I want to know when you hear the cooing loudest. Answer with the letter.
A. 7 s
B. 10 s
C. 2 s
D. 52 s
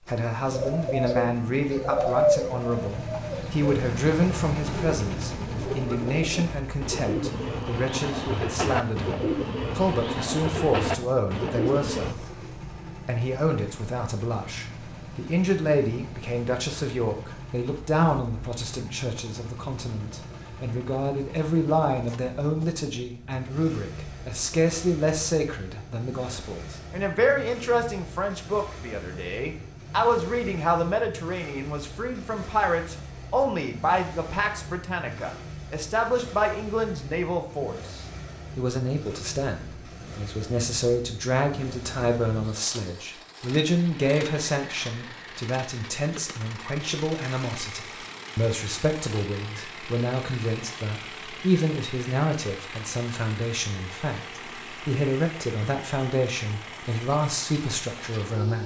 C.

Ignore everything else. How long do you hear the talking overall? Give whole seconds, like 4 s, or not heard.
58 s.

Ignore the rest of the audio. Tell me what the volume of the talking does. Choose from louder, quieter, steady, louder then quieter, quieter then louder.
steady.